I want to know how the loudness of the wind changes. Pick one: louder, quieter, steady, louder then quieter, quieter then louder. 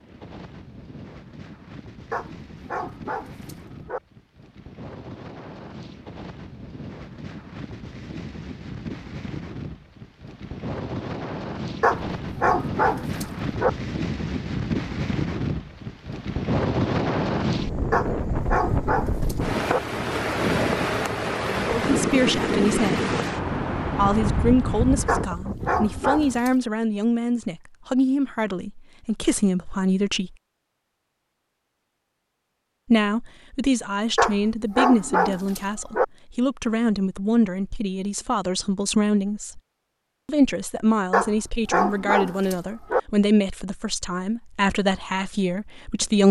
louder.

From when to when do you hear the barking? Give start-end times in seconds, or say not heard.
2.1-4.0, 11.8-13.7, 17.9-19.8, 25.1-26.6, 34.1-36.0, 41.1-43.0.